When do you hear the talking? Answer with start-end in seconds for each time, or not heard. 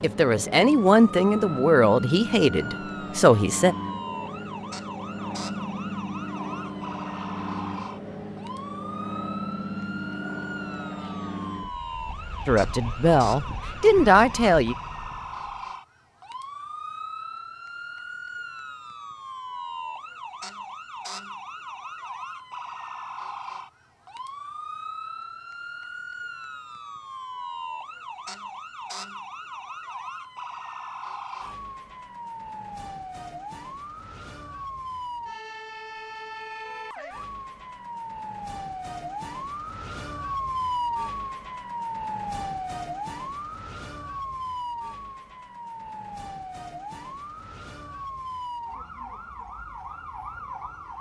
0.0-3.8, 12.4-14.8.